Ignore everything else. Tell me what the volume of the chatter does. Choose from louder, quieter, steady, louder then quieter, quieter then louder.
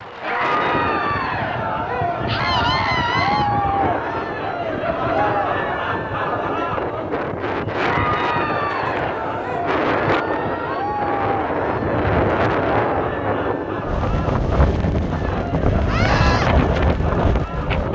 quieter.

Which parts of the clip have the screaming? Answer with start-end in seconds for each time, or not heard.
2.2-3.5, 15.8-16.5.